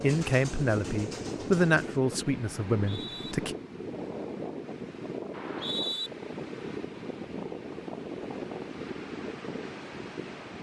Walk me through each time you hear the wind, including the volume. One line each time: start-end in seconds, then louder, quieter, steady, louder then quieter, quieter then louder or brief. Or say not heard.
0.1-10.5 steady.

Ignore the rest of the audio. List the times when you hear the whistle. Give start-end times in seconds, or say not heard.
2.7-3.4, 5.3-6.1.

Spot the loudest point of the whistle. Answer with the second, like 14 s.
6 s.